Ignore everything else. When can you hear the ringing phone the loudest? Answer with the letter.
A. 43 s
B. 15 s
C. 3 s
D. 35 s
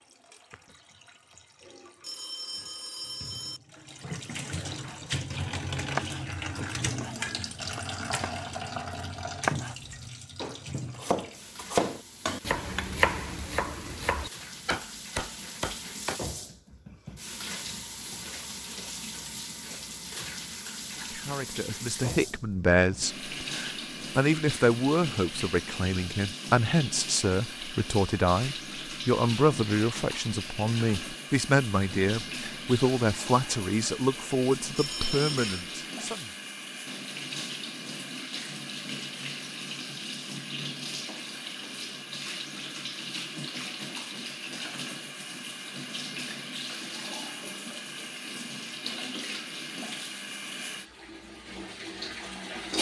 D.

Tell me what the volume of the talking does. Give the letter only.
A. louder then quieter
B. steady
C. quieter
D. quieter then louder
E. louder
B.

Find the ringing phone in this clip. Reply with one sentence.
The ringing phone can be heard from 2.0 to 3.6 s and from 34.8 to 35.6 s.